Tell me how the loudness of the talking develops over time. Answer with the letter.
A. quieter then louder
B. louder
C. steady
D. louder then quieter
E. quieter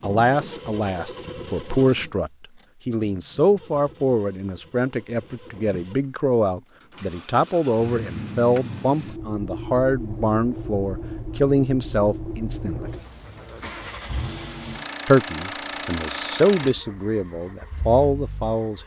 C.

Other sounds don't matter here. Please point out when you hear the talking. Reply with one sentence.
You can hear the talking from 0.0 to 12.9 s and from 15.1 to 18.8 s.